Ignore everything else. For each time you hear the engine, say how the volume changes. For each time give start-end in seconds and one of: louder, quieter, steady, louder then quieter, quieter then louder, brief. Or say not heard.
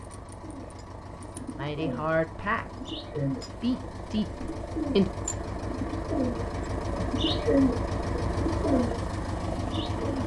0.0-10.2 louder.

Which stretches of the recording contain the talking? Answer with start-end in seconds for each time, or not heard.
1.6-5.1.